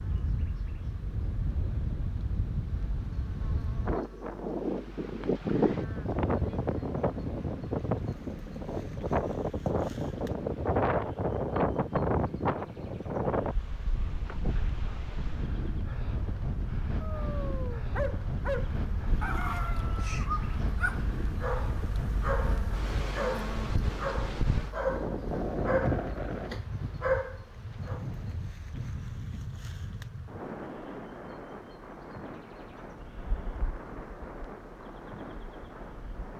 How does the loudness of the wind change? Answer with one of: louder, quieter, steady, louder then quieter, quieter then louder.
quieter.